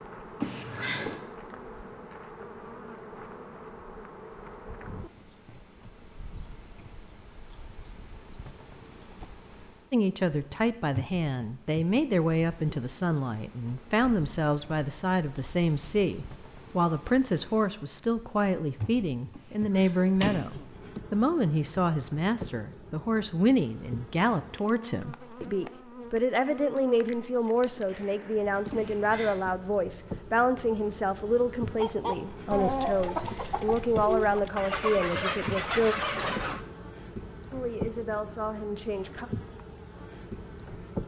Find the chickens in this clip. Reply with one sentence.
You can hear the chickens from 31.8 to 36.6 s.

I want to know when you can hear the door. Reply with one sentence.
You can hear the door from 0.4 to 1.2 s, from 19.4 to 20.6 s and from 28.7 to 29.4 s.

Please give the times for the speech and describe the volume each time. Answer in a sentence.
The speech can be heard from 9.9 to 36.0 s, at a steady volume; and briefly from 37.5 to 39.2 s.